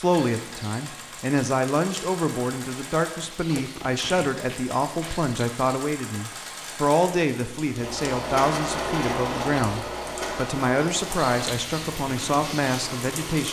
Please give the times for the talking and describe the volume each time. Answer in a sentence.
The talking can be heard from 0.0 to 13.4 s, at a steady volume.